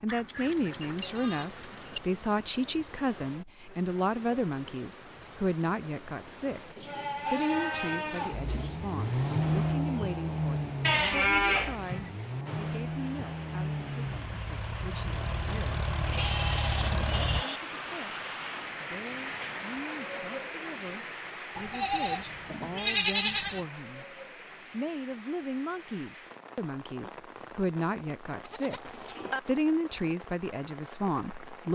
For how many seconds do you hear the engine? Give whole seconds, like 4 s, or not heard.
9 s.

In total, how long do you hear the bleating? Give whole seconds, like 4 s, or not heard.
10 s.